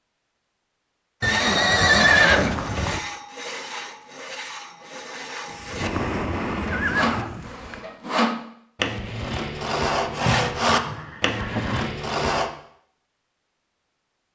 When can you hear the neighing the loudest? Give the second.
2 s.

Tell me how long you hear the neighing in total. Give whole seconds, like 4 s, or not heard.
5 s.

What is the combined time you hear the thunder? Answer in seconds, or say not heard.
2 s.